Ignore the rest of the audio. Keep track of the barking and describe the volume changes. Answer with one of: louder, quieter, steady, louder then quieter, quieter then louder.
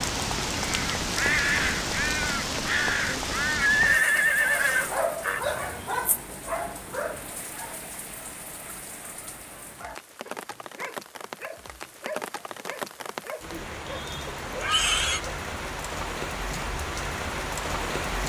quieter then louder.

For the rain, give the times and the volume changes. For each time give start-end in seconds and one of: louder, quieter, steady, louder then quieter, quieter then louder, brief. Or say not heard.
0.0-18.2 quieter then louder.